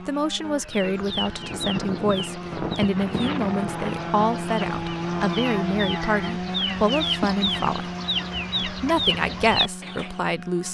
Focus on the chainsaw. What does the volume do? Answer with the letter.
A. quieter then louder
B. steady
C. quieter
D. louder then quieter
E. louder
D.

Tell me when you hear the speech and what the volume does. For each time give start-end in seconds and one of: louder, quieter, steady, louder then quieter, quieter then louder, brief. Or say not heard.
0.1-7.9 steady
8.7-10.6 brief.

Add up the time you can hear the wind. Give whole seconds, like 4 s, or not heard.
6 s.